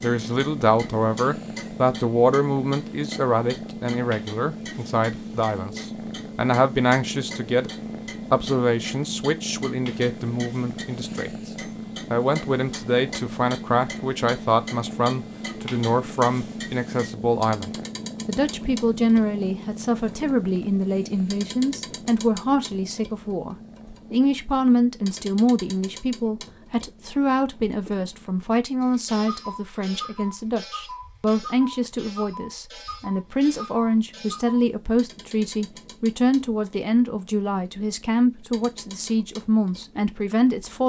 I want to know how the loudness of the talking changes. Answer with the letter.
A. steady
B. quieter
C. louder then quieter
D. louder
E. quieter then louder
A.